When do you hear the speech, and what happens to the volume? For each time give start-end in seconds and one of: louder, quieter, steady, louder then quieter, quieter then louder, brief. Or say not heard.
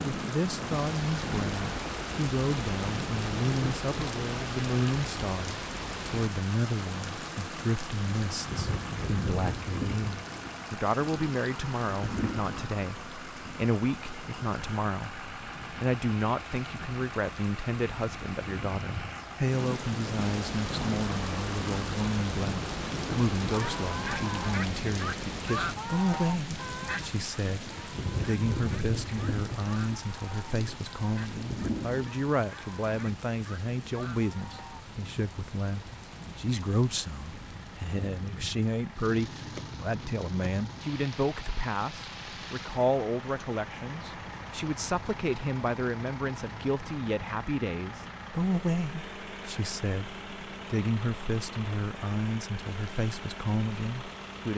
0.1-54.5 steady.